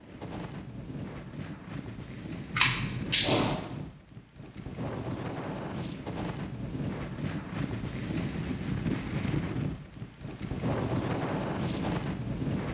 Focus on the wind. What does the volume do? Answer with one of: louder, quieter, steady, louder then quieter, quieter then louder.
louder.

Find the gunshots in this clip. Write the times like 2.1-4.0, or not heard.
2.5-3.5.